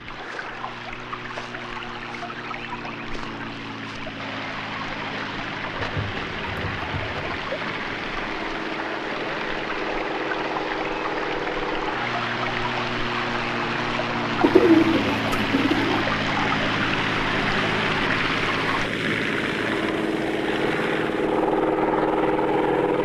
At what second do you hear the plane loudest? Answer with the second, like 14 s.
22 s.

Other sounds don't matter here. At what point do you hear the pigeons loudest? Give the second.
15 s.